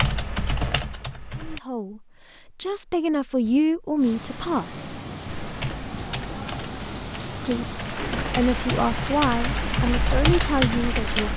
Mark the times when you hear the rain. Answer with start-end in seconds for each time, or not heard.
4.0-11.3.